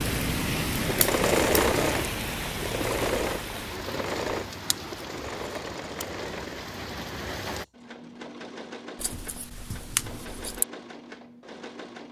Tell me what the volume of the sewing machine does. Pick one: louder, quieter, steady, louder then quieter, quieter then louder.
quieter.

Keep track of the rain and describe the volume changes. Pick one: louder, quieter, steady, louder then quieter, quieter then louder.
quieter.